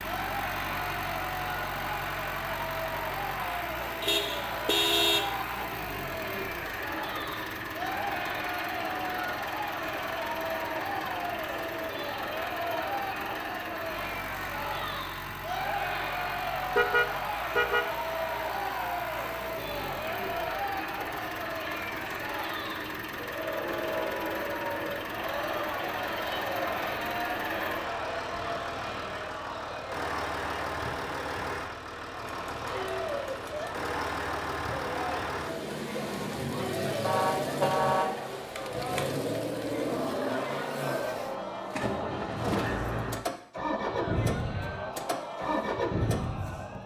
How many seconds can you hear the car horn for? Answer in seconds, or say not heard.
5 s.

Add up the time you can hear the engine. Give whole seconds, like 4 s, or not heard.
47 s.